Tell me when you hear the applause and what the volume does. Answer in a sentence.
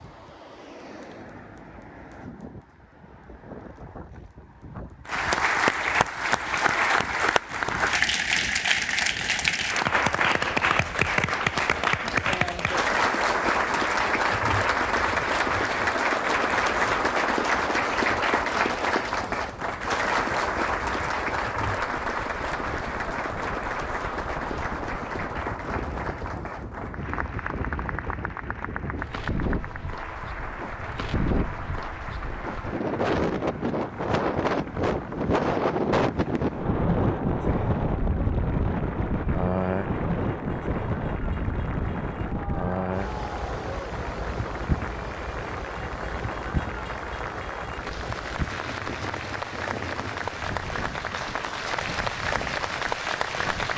You can hear the applause from 5.0 to 53.7 s, getting quieter then louder.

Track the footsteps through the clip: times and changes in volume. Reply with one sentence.
The footsteps can't be heard in this clip.